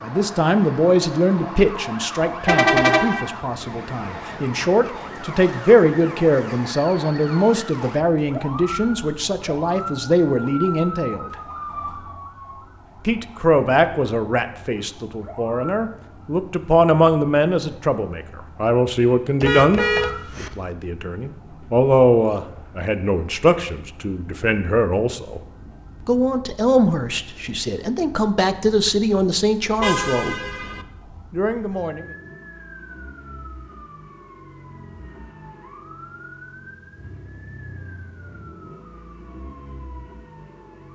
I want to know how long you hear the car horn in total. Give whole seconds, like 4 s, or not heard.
3 s.